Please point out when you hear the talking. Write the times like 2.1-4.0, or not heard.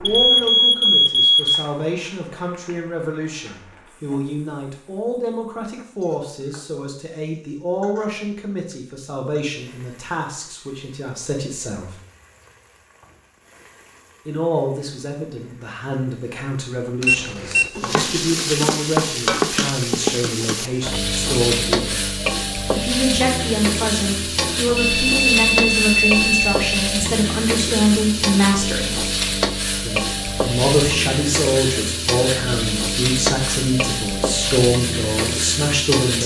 0.0-11.9, 14.2-22.1, 22.8-29.1, 29.8-36.2.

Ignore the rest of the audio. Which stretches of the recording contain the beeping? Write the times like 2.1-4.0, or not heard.
0.1-1.6, 17.0-17.7, 24.8-26.8.